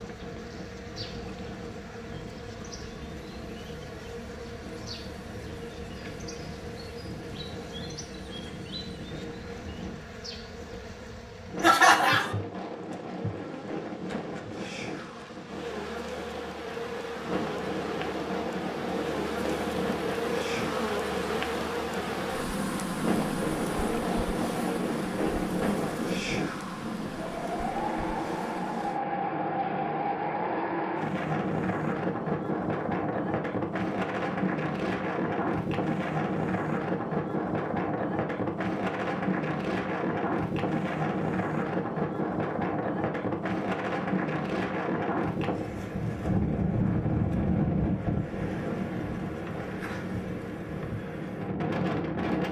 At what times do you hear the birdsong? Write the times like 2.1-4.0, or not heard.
not heard.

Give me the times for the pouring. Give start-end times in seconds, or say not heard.
not heard.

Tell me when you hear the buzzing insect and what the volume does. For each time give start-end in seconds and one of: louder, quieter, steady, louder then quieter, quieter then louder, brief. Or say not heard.
0.0-29.0 louder.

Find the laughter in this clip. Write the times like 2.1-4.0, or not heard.
11.6-12.3.